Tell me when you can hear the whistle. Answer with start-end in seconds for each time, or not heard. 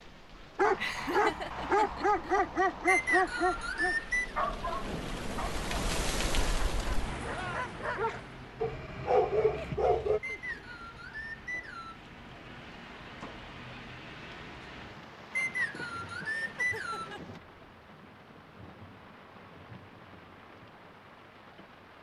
2.9-4.3, 10.2-12.0, 15.3-17.1.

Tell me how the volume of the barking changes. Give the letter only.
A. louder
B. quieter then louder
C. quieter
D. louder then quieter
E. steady
B.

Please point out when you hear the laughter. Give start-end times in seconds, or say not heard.
0.8-2.4, 9.5-10.7, 16.2-17.4.